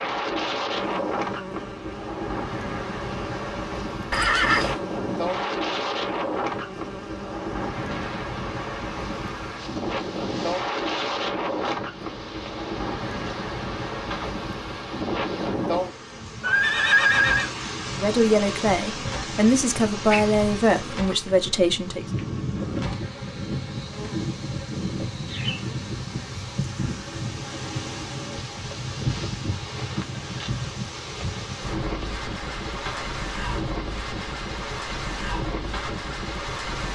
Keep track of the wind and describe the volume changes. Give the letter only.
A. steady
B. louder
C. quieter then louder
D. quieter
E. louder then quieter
A.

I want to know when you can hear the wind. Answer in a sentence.
You can hear the wind from 0.0 to 36.9 s.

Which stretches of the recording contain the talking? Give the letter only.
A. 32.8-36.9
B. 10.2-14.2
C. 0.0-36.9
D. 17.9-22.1
D.